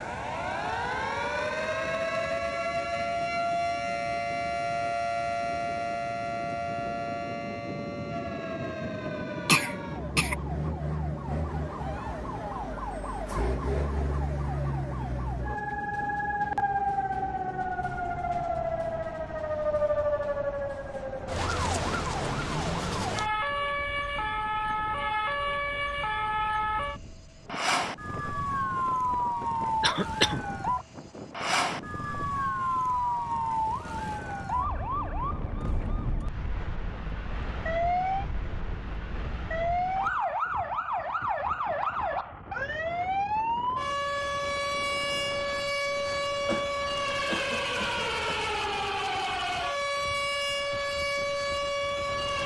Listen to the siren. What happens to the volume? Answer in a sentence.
The loudness of the siren stays about the same.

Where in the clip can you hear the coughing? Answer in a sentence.
You can hear the coughing from 9.4 to 10.3 s, from 29.8 to 30.4 s and from 46.5 to 48.4 s.